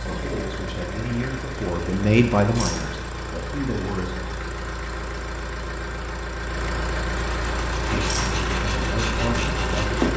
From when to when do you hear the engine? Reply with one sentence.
You can hear the engine from 0.0 to 10.1 s.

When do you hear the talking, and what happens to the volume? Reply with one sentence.
The talking can be heard from 0.0 to 4.3 s, getting louder then quieter; and briefly from 7.8 to 10.0 s.